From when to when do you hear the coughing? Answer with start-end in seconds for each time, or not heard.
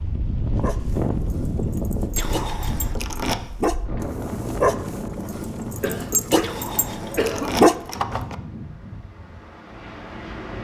5.8-7.5.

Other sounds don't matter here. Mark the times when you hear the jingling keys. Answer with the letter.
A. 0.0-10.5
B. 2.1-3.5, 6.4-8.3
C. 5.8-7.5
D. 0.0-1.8
B.